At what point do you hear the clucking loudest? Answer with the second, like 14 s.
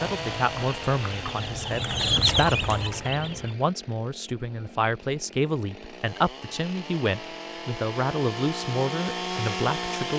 2 s.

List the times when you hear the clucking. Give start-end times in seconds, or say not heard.
0.0-3.5.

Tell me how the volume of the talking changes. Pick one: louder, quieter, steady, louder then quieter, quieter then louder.
steady.